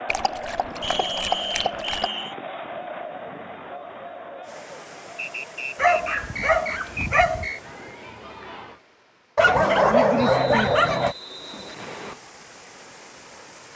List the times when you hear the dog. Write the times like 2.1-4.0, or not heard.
0.1-2.1, 5.8-7.5, 9.3-11.2.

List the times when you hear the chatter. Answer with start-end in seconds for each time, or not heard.
0.0-8.8.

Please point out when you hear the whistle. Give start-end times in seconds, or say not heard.
0.8-2.4, 5.2-7.6, 10.2-12.2.